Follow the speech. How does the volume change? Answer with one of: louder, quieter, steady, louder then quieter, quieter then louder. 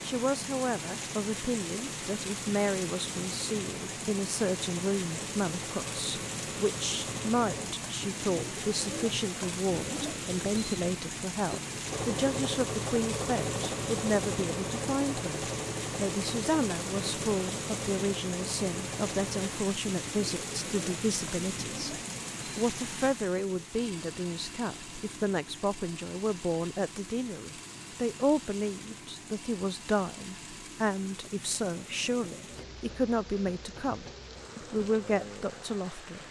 steady.